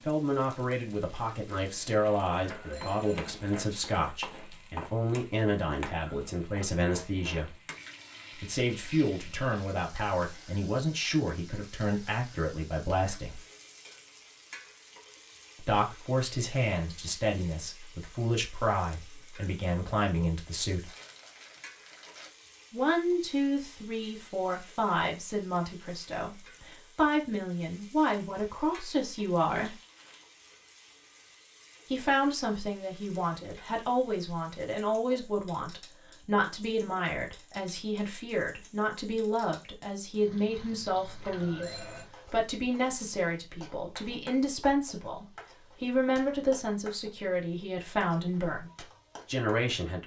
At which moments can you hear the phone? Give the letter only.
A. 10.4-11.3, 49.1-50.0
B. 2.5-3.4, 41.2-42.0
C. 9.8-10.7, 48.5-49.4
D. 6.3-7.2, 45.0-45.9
B.